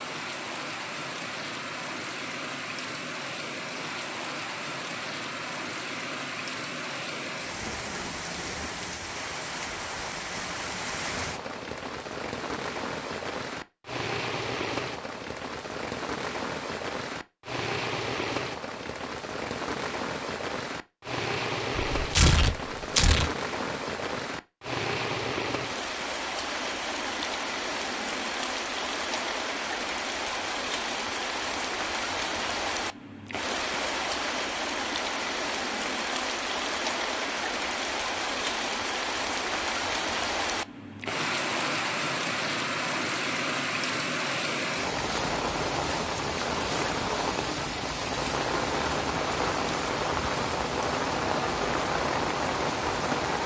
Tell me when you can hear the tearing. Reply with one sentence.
The tearing can be heard from 21.9 to 23.3 s.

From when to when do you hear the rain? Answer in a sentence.
The rain can be heard from 0.0 to 53.4 s.